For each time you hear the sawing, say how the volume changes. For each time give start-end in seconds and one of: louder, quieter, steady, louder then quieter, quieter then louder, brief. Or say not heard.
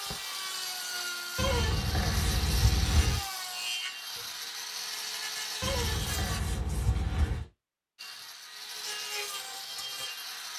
0.0-6.4 steady
8.0-10.5 brief.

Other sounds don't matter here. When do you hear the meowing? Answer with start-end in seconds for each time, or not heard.
1.4-3.2, 5.6-7.5.